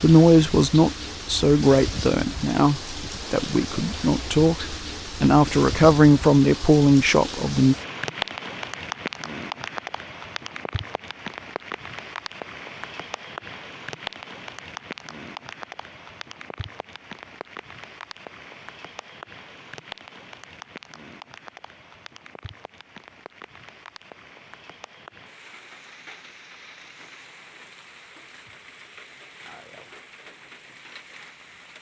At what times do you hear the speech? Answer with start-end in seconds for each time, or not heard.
0.0-7.8.